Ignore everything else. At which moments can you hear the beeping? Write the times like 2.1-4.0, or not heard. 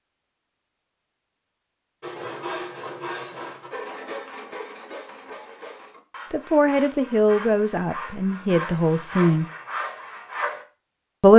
not heard.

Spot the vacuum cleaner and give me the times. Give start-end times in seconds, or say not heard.
not heard.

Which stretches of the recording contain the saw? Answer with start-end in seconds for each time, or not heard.
2.0-10.7.